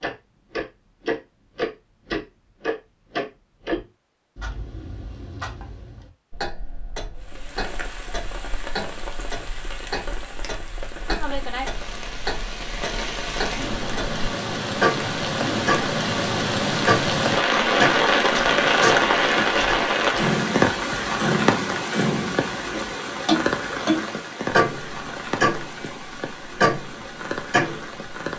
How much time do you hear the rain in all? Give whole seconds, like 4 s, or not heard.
21 s.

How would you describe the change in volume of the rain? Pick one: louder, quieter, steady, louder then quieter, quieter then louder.
louder then quieter.